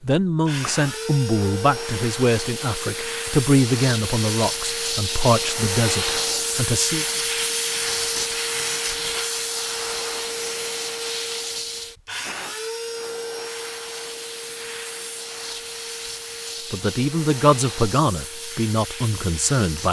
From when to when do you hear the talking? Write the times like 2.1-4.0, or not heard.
0.0-7.0, 16.7-19.8.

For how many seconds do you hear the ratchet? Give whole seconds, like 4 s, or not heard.
not heard.